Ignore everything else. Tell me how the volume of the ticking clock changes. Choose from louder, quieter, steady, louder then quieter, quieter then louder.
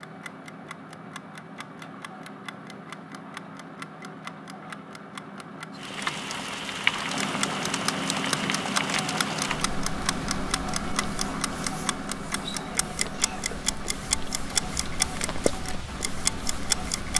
louder.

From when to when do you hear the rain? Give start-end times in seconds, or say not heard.
5.7-17.1.